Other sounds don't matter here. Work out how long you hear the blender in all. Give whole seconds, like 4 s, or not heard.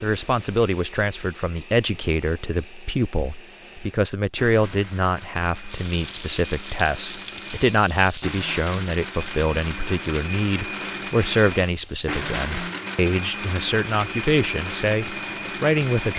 16 s.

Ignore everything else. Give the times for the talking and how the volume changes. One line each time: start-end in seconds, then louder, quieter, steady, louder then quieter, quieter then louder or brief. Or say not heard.
0.0-16.1 steady.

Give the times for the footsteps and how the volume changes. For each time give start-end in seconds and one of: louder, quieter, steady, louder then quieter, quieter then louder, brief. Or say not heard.
not heard.